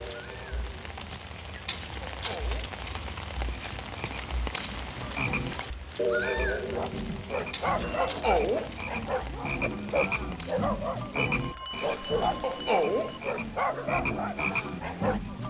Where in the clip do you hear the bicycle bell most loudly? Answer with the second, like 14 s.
3 s.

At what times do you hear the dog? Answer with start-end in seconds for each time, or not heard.
6.7-15.2.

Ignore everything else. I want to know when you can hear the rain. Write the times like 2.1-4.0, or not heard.
0.0-15.4.